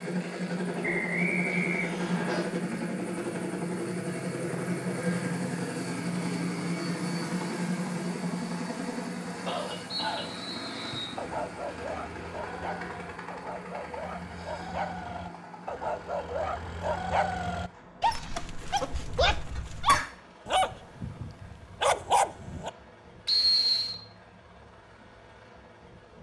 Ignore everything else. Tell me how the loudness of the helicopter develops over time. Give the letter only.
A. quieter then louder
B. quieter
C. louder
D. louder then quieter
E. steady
B.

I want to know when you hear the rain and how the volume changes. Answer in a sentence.
The rain can't be heard in this clip.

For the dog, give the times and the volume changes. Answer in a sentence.
The dog can be heard from 11.2 to 22.7 s, getting louder.